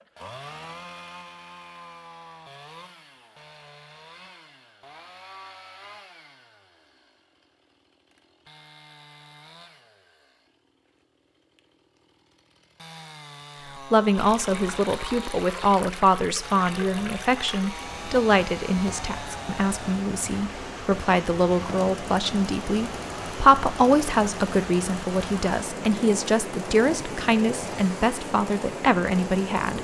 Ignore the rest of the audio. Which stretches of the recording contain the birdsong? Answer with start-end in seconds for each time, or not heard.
not heard.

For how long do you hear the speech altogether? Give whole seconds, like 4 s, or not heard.
16 s.